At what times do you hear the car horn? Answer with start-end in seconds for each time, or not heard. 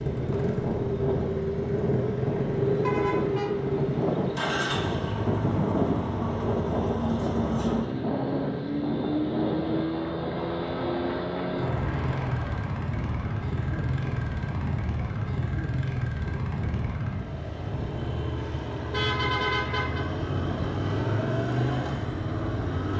2.8-3.5, 18.9-20.1.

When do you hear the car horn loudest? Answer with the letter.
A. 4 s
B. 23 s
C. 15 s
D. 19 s
D.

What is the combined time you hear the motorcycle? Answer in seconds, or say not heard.
23 s.